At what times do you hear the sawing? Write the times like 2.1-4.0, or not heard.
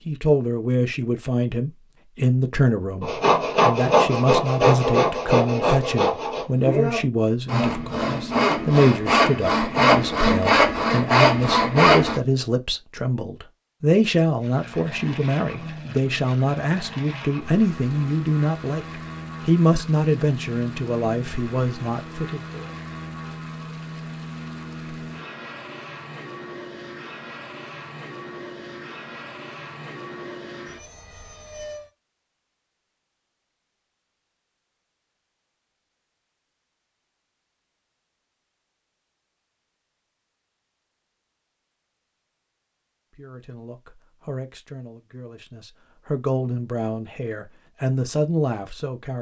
3.0-12.2.